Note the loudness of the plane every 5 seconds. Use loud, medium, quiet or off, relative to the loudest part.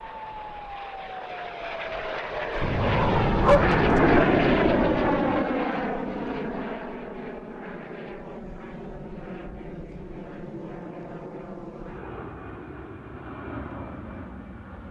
loud, medium, quiet.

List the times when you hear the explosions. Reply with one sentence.
You can hear the explosions from 2.6 to 5.5 s.